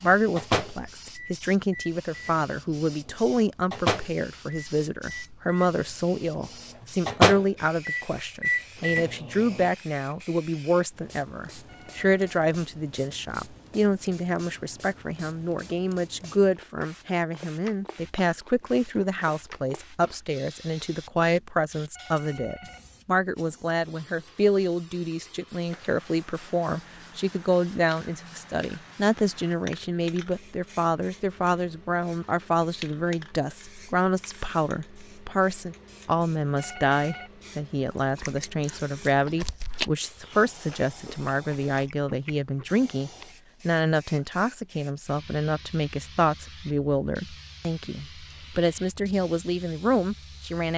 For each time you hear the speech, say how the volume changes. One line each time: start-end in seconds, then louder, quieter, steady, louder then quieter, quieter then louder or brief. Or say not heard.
0.0-50.7 steady.